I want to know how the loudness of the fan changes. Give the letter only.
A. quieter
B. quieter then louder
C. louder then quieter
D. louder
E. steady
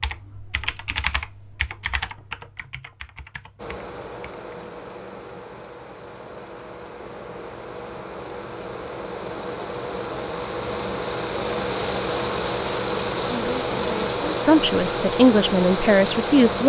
D.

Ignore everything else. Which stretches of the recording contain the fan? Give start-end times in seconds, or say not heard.
3.5-16.6.